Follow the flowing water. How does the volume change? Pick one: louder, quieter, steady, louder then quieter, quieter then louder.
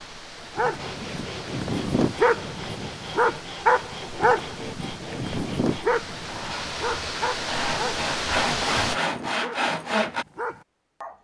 louder.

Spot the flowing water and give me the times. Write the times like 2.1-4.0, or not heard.
0.0-9.0.